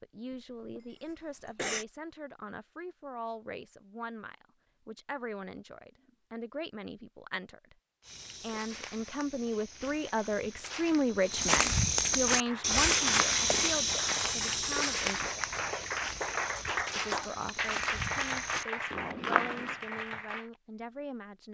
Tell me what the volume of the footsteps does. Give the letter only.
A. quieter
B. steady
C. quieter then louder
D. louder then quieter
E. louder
D.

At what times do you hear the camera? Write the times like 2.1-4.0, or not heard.
not heard.